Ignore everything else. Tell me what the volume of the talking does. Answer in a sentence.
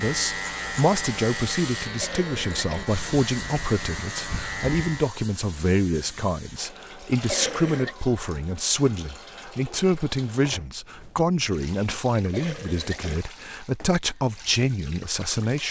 The volume of the talking stays about the same.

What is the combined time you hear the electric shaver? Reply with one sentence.
The electric shaver can be heard for 5 seconds in total.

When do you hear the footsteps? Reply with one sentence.
The footsteps can't be heard in this clip.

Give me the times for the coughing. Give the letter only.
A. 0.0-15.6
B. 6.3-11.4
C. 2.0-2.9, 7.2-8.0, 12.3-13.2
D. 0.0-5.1
C.